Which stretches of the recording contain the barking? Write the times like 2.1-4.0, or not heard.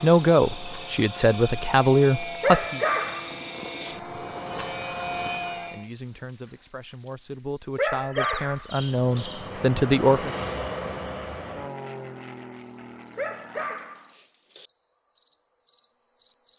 2.4-4.0, 7.8-9.3, 13.1-14.7.